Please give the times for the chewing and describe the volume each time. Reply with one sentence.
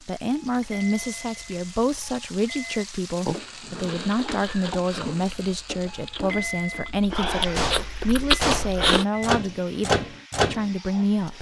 You can hear the chewing from 3.8 to 9.1 s, getting quieter then louder.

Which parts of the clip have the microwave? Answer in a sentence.
You can hear the microwave from 7.5 to 10.7 s.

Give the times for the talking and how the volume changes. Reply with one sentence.
You can hear the talking from 0.1 to 11.3 s, at a steady volume.